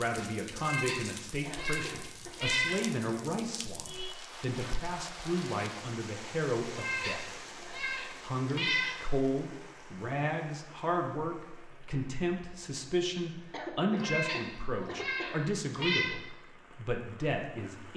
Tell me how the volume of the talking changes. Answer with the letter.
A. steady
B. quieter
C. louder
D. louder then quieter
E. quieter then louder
A.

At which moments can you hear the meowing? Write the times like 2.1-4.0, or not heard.
0.6-2.9, 6.7-9.0, 13.9-16.1.